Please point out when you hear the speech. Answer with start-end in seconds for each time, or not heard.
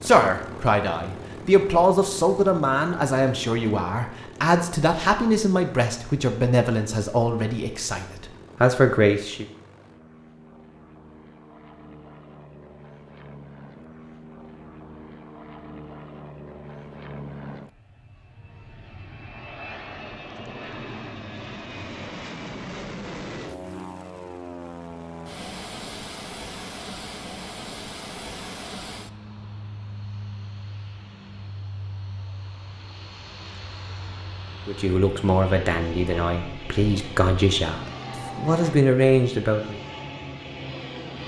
0.0-9.4, 34.6-39.8.